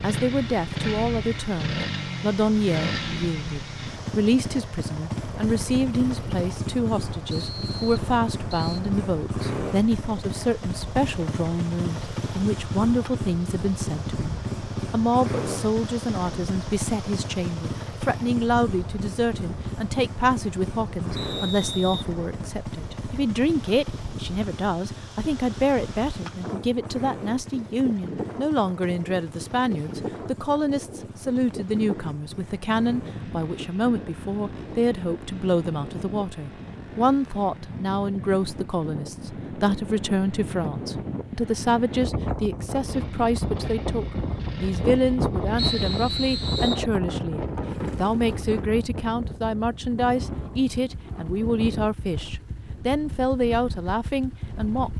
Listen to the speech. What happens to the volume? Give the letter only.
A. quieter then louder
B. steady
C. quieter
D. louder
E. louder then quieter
B.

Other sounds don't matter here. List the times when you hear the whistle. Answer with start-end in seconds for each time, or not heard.
7.3-8.8, 21.1-22.1, 45.5-46.9.